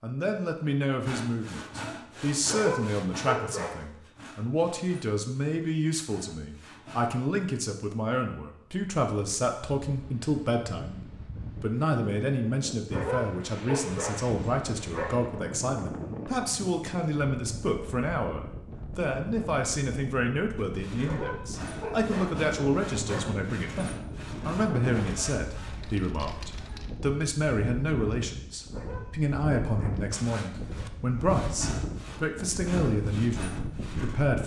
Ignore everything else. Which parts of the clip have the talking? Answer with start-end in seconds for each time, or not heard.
0.0-34.4.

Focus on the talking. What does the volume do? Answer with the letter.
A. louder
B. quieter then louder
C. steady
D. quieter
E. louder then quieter
C.